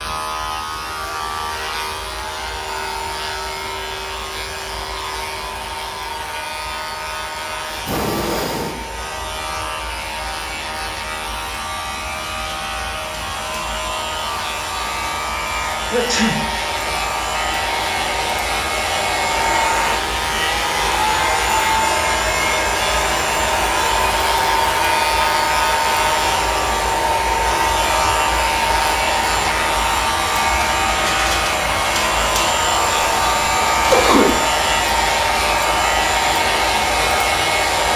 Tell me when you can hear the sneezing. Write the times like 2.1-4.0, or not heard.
7.7-8.8, 15.8-16.4, 33.9-34.4.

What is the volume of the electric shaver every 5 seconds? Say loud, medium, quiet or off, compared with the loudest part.
medium, medium, medium, loud, loud, loud, loud, loud.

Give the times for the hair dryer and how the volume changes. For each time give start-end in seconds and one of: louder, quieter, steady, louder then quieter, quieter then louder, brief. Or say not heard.
0.0-37.9 louder.